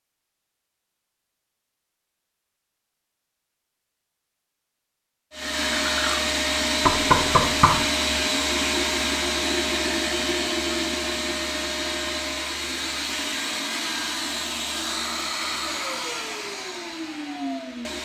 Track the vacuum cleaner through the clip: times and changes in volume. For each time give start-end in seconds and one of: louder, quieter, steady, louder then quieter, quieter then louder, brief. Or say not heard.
5.3-18.0 quieter.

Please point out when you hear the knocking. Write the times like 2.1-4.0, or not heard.
6.8-7.9.